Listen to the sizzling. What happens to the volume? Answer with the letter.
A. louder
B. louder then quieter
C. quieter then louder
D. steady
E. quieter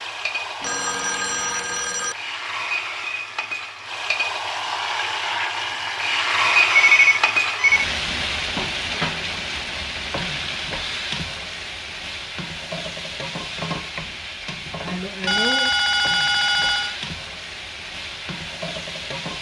B.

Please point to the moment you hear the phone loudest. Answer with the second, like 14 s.
7 s.